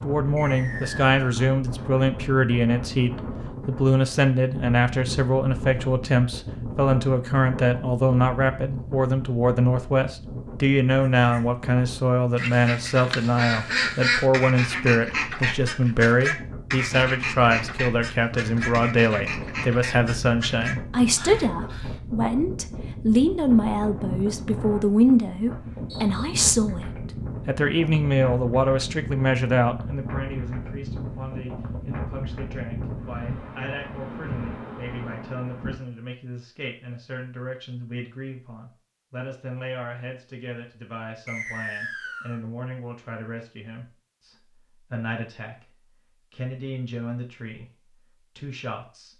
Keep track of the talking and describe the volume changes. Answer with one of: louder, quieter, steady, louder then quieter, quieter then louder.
quieter.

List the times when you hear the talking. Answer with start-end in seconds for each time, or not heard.
0.0-49.1.